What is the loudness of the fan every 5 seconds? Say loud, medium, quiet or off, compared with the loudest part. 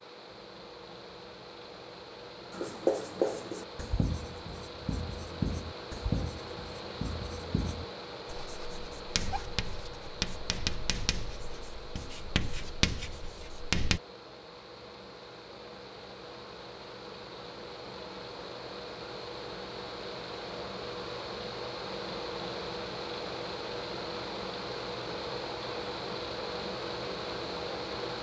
medium, medium, medium, medium, loud, loud.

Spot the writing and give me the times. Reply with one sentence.
You can hear the writing from 2.5 to 14.0 s.